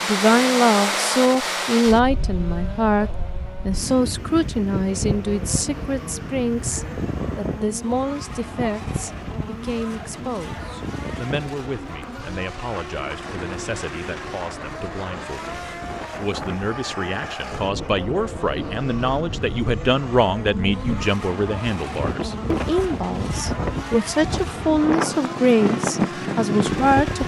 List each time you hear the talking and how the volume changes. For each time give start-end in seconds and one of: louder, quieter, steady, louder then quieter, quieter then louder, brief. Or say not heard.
0.0-27.2 quieter then louder.